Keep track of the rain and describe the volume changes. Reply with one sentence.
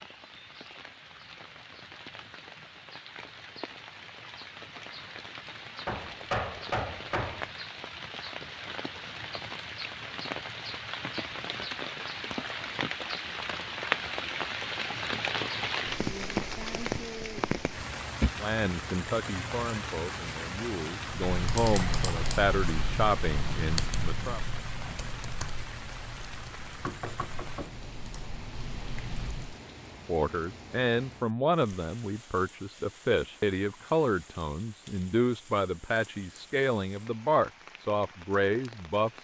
The loudness of the rain goes up, then down.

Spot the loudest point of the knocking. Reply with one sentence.
The volume of the knocking peaks at 6 seconds.